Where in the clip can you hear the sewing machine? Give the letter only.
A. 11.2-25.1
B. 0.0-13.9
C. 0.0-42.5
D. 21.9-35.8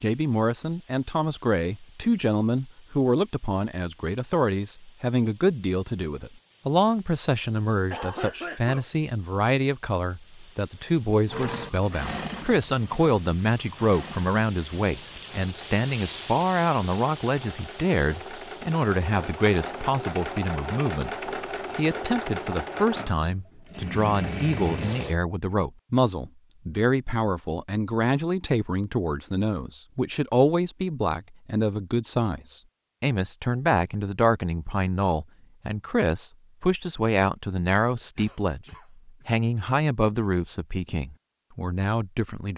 A.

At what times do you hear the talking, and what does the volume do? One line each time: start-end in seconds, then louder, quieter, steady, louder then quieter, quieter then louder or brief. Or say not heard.
0.0-42.5 steady.